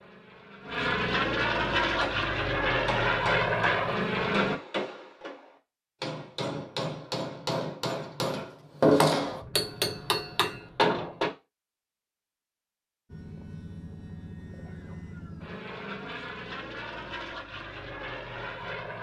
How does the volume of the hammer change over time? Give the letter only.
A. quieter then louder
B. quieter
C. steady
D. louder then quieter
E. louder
E.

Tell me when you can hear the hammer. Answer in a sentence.
The hammer can be heard from 1.8 to 11.3 s.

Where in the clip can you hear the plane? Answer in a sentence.
You can hear the plane from 0.0 to 4.6 s and from 13.1 to 18.9 s.